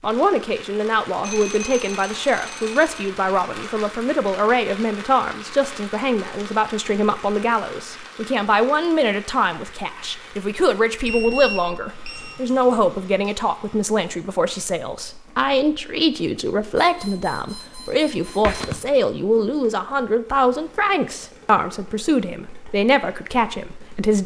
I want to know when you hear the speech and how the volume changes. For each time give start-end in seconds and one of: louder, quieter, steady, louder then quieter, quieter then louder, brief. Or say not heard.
0.0-24.2 steady.